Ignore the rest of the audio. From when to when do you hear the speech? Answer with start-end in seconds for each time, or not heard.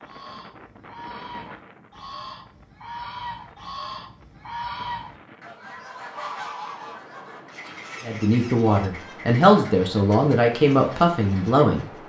8.0-11.8.